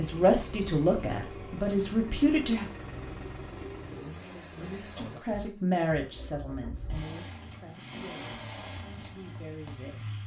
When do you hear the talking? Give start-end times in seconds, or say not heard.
0.0-2.7, 4.2-10.2.